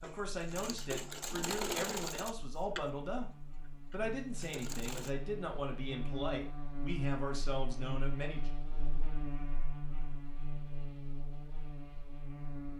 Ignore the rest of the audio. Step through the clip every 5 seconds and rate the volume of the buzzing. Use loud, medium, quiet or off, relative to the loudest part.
medium, loud, loud.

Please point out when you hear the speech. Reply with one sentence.
You can hear the speech from 0.0 to 8.5 s.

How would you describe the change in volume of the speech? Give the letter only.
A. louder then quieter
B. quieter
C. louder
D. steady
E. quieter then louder
D.